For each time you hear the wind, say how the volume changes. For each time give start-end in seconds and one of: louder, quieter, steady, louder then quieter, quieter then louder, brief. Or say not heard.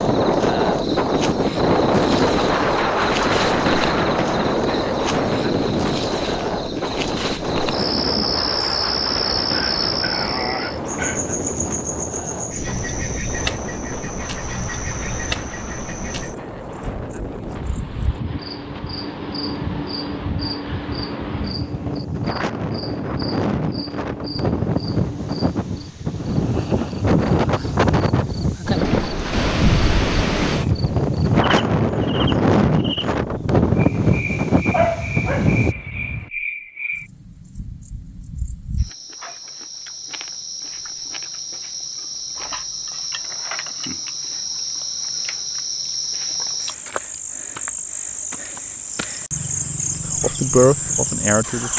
0.0-35.8 quieter then louder.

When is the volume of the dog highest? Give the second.
35 s.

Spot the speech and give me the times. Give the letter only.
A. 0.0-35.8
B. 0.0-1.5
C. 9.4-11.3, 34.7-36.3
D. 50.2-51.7
D.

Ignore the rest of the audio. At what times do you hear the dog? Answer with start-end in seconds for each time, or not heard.
9.4-11.3, 34.7-36.3.